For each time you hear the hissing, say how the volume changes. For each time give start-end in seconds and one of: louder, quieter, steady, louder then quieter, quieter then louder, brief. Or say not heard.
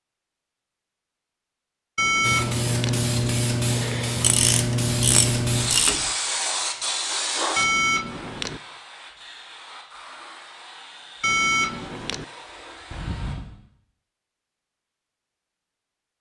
2.2-13.4 quieter.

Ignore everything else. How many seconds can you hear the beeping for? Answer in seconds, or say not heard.
3 s.